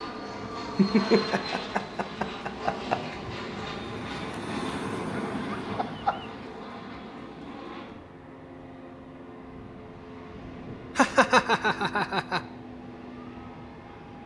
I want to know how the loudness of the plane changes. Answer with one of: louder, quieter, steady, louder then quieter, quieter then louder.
quieter.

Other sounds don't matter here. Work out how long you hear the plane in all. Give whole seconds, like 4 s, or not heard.
14 s.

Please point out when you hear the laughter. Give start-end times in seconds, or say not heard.
0.8-3.0, 5.3-6.2, 10.9-12.4.